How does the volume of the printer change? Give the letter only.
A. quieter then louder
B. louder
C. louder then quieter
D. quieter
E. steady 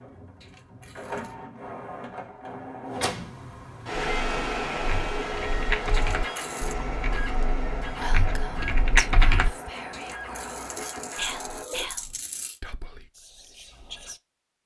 C.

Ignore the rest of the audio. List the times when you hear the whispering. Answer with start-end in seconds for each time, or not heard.
7.4-14.2.